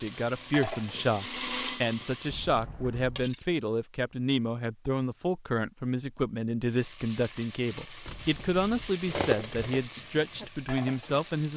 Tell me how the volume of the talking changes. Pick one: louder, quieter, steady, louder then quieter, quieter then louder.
steady.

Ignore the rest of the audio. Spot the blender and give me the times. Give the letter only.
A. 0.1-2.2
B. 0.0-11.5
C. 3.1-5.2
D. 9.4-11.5
A.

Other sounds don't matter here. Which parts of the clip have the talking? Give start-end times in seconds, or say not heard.
0.0-11.5.